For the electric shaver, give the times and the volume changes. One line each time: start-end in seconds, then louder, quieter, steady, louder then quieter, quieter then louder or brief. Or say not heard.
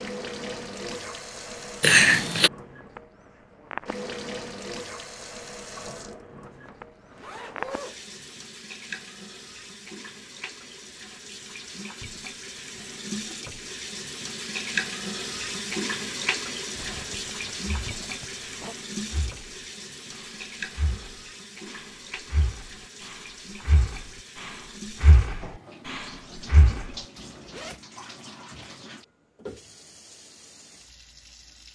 not heard.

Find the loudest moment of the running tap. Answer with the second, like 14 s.
15 s.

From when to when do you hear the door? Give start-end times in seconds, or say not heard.
not heard.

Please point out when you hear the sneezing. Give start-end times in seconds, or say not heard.
1.8-2.5.